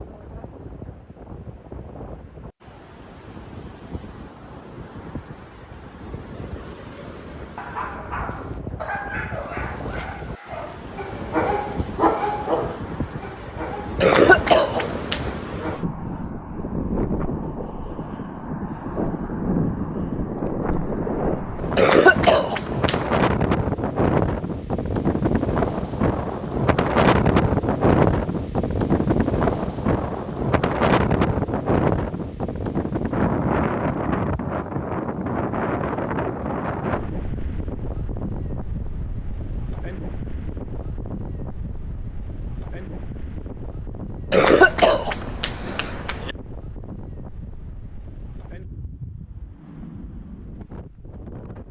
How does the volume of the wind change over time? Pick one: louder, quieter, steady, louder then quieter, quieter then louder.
louder then quieter.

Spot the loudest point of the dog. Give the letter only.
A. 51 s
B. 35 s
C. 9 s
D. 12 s
D.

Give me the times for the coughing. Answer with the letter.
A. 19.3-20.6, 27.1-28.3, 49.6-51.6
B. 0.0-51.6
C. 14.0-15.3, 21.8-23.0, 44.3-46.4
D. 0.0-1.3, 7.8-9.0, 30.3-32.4
C.